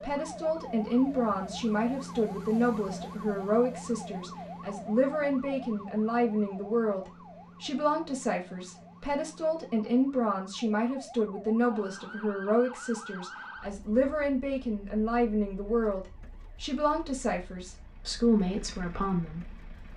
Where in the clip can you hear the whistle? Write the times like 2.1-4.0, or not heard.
not heard.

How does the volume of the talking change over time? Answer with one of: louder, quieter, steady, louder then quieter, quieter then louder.
steady.